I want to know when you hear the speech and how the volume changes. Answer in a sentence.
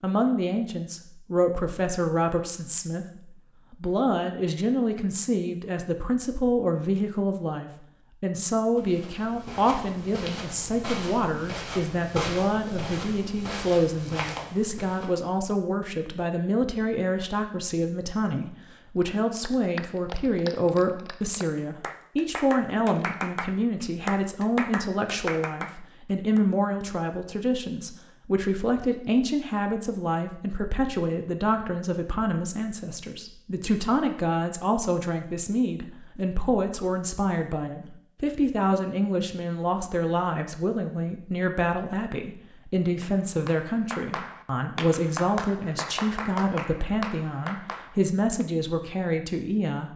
You can hear the speech from 0.0 to 49.9 s, at a steady volume.